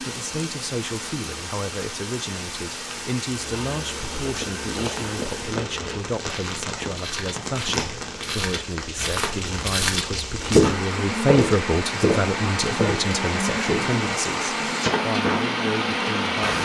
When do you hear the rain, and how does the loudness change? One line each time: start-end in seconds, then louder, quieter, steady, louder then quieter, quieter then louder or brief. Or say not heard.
0.0-16.6 louder.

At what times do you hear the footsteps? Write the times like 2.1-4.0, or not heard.
3.2-13.9.